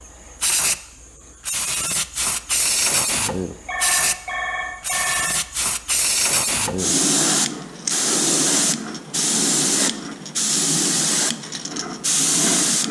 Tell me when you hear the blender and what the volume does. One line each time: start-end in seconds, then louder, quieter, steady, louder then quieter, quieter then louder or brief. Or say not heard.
not heard.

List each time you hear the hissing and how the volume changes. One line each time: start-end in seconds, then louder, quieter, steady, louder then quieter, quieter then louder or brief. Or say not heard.
0.0-12.8 steady.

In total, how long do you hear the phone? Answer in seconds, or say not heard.
2 s.